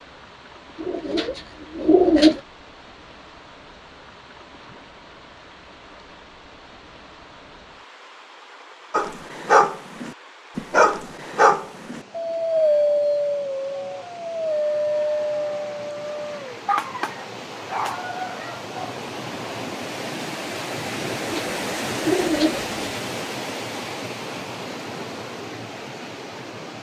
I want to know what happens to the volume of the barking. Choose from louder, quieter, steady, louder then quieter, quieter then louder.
quieter.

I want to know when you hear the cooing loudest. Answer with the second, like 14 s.
2 s.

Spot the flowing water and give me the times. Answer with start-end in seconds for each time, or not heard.
0.0-26.7.